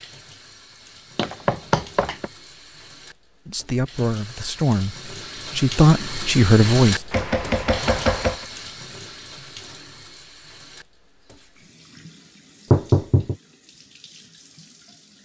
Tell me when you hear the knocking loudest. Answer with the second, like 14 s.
13 s.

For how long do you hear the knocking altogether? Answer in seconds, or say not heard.
3 s.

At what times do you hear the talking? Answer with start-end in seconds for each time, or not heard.
3.5-7.0.